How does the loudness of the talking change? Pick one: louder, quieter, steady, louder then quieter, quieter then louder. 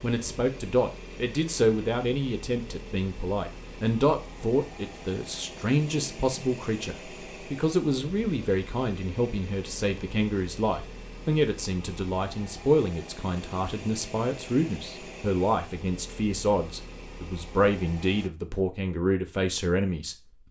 steady.